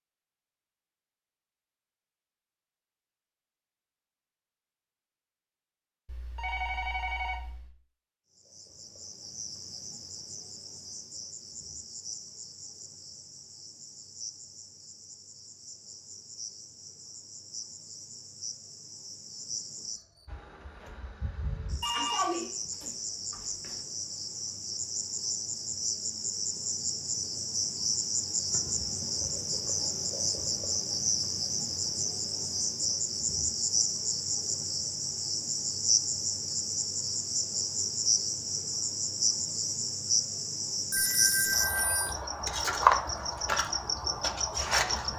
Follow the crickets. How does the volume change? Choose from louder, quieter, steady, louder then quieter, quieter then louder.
louder.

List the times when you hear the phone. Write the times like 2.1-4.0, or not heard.
6.0-7.7, 21.8-23.8, 40.9-42.1.